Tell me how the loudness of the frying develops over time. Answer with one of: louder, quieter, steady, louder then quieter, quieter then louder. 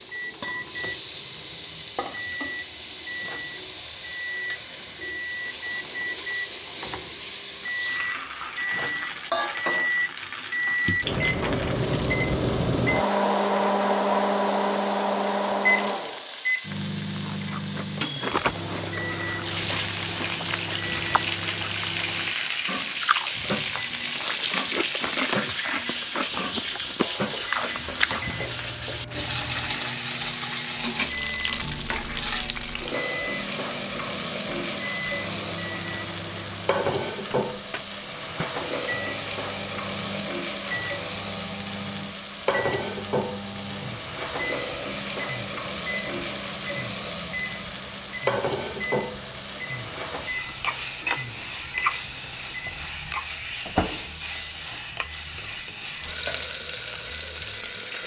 steady.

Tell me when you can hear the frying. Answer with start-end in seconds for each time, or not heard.
0.0-58.0.